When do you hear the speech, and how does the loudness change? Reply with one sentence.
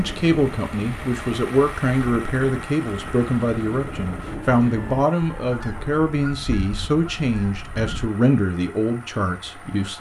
You can hear the speech from 0.0 to 9.9 s, at a steady volume.